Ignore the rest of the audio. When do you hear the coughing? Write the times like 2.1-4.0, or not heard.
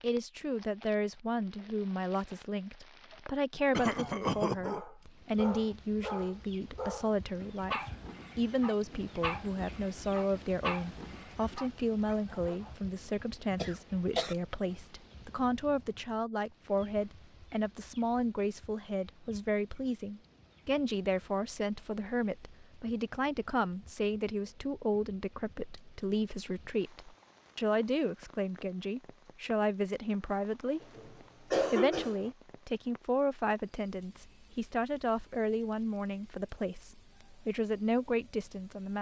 3.7-4.8, 13.6-14.3, 30.8-32.3.